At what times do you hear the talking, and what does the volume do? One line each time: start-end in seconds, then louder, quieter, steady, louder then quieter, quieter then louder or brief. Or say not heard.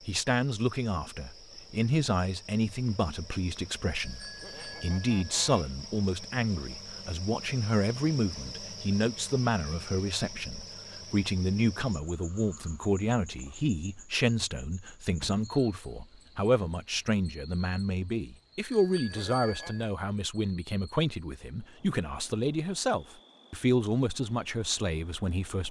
0.1-25.6 steady.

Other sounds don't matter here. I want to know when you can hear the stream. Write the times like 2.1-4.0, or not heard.
not heard.